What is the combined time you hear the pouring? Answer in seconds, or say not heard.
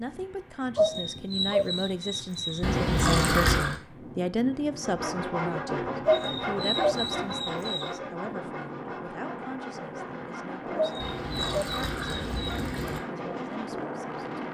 3 s.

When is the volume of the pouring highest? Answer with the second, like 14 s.
3 s.